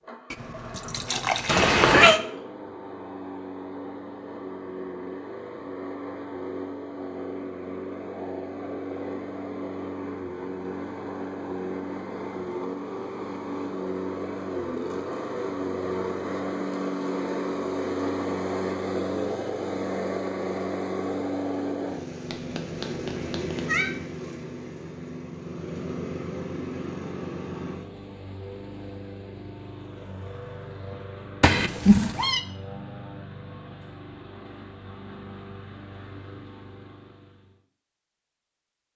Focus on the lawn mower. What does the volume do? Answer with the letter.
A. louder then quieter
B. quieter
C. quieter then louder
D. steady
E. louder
A.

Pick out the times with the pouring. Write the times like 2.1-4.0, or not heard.
0.3-1.8.